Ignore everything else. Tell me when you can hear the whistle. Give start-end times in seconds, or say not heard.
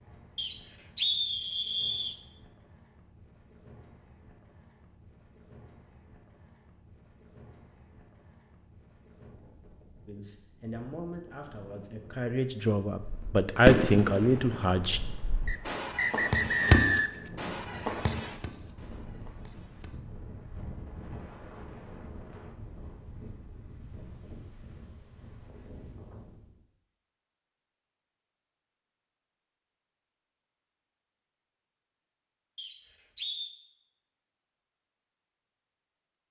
0.3-2.2, 15.4-17.2, 32.5-33.5.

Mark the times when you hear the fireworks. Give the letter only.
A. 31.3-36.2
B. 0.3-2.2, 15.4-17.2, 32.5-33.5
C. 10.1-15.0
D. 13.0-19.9
D.